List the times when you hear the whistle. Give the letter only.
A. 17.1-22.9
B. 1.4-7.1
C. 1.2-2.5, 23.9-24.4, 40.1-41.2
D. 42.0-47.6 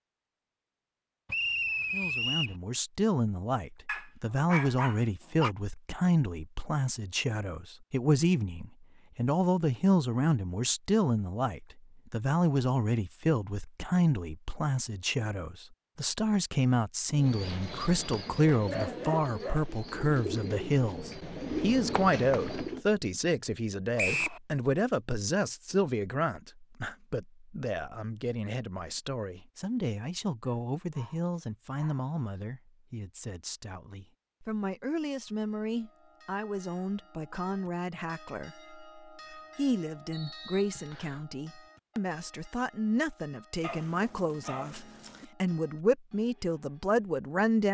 C.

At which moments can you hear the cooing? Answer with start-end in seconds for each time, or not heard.
17.1-22.9.